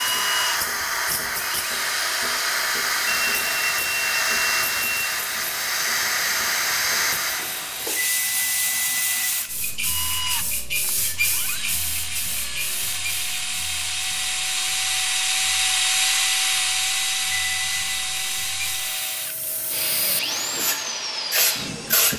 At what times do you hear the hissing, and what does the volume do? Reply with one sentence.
The hissing can be heard from 0.0 to 22.1 s, getting quieter then louder.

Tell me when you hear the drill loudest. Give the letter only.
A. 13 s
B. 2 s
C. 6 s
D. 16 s
D.